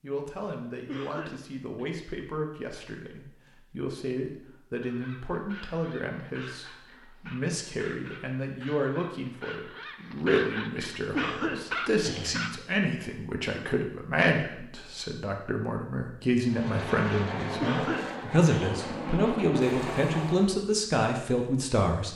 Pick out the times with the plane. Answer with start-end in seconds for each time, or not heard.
16.4-20.6.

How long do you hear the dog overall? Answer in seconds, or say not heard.
8 s.